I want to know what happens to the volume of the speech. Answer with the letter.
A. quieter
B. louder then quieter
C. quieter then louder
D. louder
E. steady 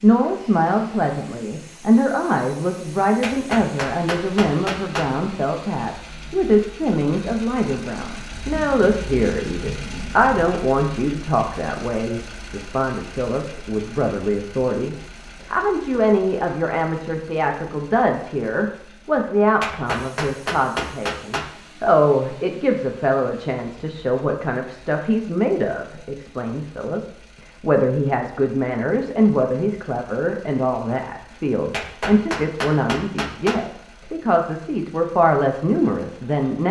E.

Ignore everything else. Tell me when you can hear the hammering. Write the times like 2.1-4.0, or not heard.
3.2-5.1, 19.6-21.5, 31.7-33.6.